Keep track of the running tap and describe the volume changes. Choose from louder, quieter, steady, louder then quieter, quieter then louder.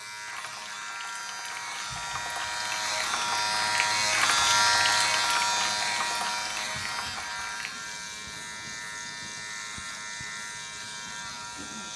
louder then quieter.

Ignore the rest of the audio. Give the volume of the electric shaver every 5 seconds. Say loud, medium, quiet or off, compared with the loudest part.
loud, loud, medium.